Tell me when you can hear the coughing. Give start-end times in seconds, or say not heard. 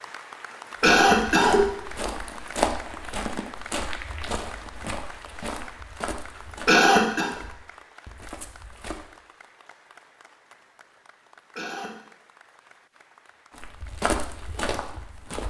0.8-1.6, 6.7-7.3, 11.6-12.0.